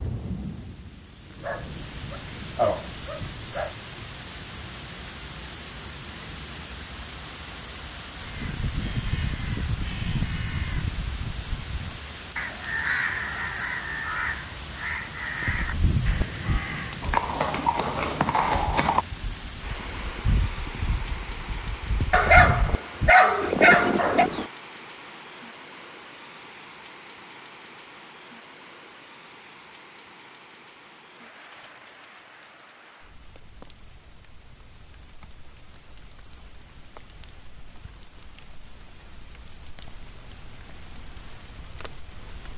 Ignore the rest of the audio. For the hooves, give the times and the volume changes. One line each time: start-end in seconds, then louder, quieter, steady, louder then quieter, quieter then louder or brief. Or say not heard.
15.4-24.5 quieter then louder.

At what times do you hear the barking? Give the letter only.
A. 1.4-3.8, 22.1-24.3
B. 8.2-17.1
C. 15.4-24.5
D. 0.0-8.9
A.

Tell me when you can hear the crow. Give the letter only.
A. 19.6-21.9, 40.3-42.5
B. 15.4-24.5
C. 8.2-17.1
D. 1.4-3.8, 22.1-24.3
C.